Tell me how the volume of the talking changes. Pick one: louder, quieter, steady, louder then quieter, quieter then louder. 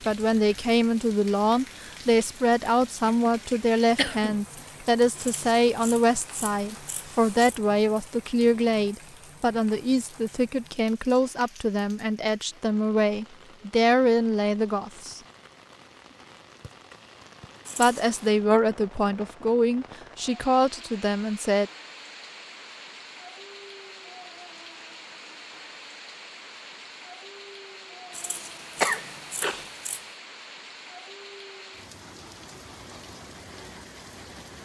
steady.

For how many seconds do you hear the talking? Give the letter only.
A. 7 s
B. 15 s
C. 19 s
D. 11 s
C.